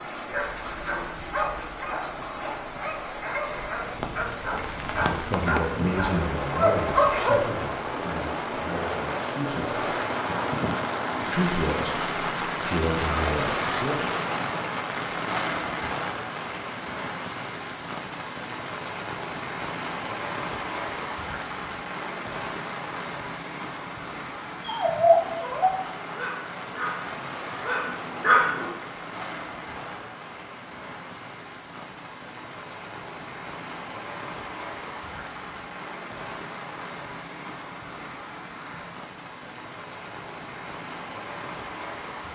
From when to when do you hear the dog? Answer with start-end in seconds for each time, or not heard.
0.3-7.5, 24.6-28.7.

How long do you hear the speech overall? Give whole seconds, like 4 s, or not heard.
8 s.